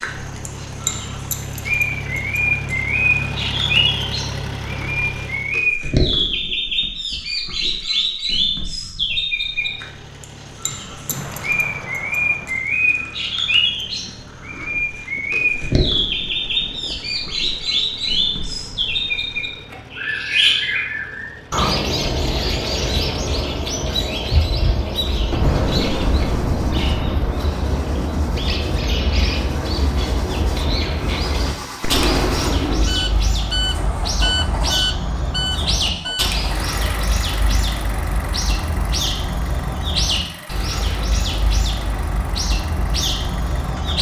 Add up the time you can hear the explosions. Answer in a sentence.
The explosions can be heard for 5 seconds in total.